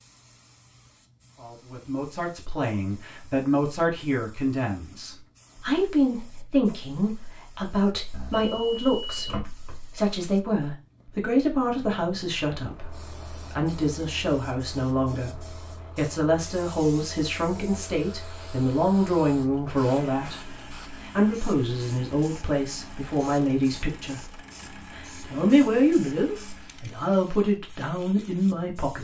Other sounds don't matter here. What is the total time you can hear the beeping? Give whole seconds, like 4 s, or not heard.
2 s.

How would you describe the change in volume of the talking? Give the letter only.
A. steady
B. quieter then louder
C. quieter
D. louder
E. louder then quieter
A.